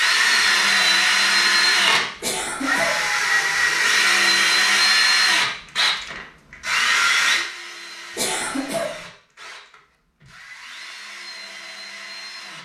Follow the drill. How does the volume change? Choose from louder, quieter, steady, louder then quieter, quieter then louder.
quieter.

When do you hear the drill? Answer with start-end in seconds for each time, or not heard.
0.0-12.5.